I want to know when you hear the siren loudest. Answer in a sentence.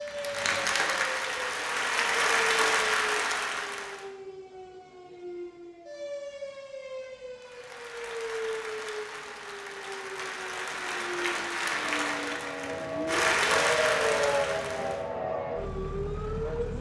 The loudest moment of the siren is at 14 seconds.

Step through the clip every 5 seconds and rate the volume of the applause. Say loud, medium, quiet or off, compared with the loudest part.
loud, quiet, loud, off.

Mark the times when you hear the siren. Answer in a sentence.
The siren can be heard from 0.0 to 16.7 s.